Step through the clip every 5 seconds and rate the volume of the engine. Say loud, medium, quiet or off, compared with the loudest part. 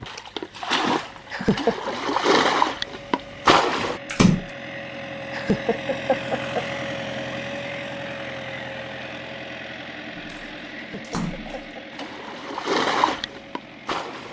medium, loud, medium.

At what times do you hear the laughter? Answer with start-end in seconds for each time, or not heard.
1.3-1.9, 5.3-6.7, 10.8-12.0.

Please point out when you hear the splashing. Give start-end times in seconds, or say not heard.
0.0-4.5, 10.1-14.2.